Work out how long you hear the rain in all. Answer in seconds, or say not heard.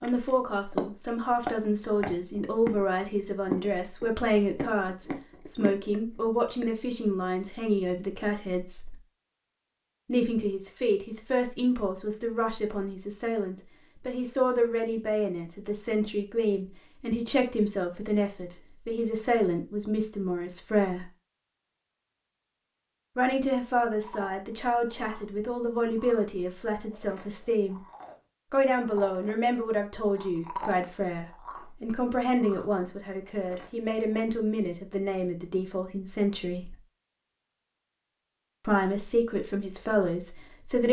not heard.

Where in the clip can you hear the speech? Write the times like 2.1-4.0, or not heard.
0.0-8.9, 10.1-21.1, 23.1-27.8, 28.5-36.8, 38.6-40.8.